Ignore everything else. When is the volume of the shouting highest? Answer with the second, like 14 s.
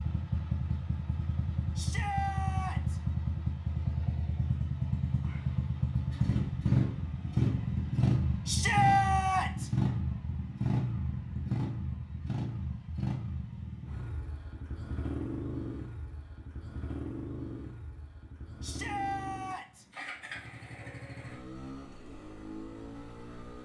9 s.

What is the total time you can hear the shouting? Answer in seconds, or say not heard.
4 s.